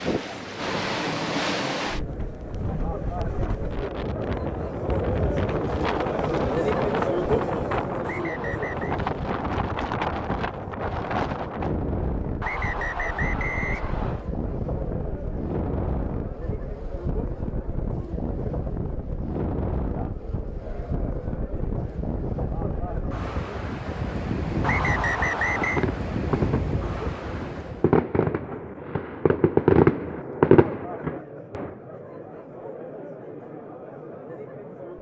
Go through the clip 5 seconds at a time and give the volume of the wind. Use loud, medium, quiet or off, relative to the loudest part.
loud, loud, loud, loud, loud, loud, off.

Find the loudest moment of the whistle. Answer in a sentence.
The loudest moment of the whistle is at 25 seconds.